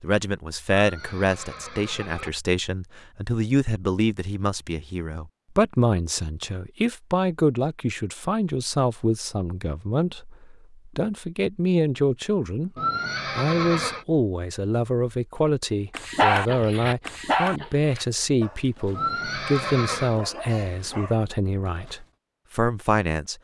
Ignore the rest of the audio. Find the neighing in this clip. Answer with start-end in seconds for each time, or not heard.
0.8-2.3, 12.8-14.1, 18.9-20.2.